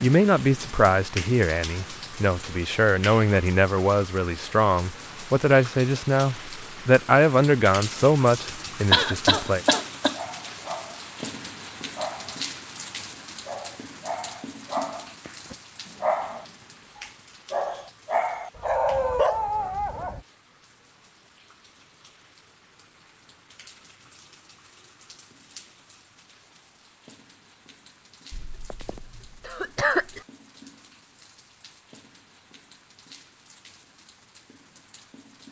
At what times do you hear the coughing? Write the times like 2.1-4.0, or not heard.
8.9-10.2, 28.3-30.2.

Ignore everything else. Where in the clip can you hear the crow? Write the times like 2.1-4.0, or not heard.
not heard.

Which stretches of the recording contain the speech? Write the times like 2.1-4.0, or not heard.
0.0-9.6.